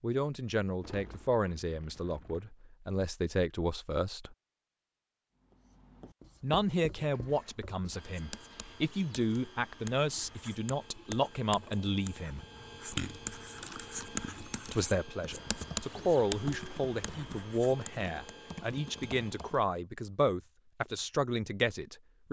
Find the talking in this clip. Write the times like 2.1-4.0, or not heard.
0.0-4.3, 6.4-12.4, 14.7-22.2.